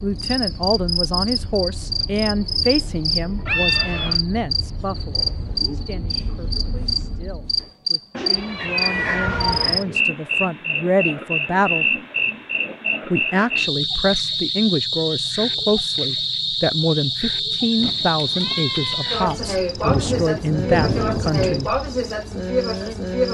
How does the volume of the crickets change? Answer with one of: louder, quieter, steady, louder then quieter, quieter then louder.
steady.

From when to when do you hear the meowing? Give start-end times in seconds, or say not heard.
3.5-4.2, 8.2-9.9, 18.1-19.6.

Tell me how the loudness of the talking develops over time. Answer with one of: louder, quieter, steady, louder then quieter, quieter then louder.
quieter then louder.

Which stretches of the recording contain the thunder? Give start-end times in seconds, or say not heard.
17.8-21.7.